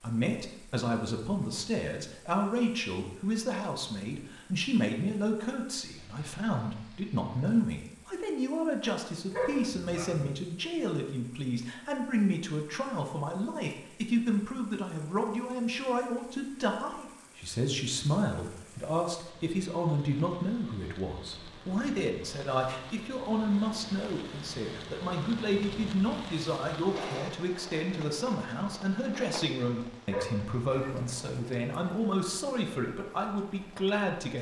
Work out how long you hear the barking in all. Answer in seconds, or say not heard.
2 s.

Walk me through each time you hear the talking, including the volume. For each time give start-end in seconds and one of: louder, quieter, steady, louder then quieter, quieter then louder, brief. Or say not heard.
0.0-34.3 steady.